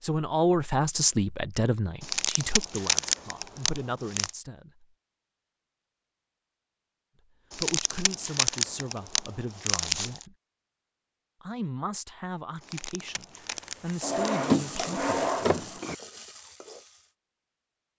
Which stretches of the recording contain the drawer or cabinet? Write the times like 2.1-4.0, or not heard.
14.0-15.9.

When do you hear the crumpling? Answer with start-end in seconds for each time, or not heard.
2.0-4.3, 7.5-10.2, 12.6-14.9.